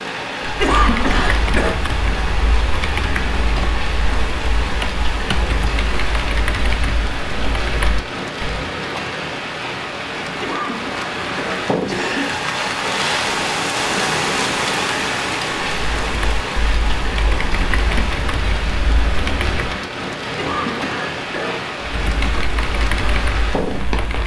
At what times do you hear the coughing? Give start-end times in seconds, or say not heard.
0.6-1.8, 10.4-12.3, 20.4-21.6.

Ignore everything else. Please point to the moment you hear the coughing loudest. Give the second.
1 s.